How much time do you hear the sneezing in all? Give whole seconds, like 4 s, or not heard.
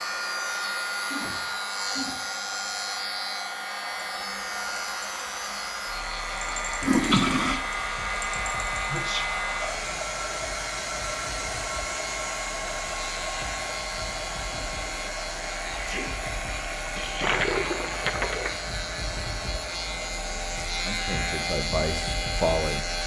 2 s.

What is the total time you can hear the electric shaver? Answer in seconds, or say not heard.
23 s.